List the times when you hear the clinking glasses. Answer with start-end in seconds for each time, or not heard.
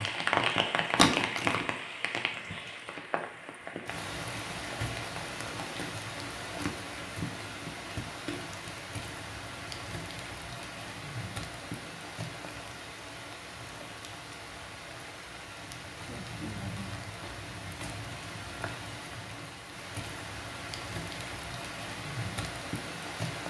not heard.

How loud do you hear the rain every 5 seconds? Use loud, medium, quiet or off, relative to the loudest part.
loud, medium, medium, medium, medium.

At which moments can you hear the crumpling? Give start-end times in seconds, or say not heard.
0.9-1.6.